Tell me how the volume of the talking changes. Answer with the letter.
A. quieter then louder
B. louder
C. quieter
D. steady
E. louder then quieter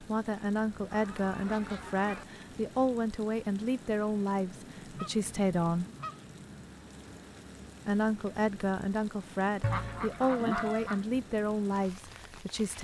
D.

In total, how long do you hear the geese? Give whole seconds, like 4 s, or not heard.
5 s.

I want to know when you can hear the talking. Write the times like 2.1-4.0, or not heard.
0.0-5.9, 7.8-12.7.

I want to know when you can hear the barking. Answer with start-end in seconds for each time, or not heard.
not heard.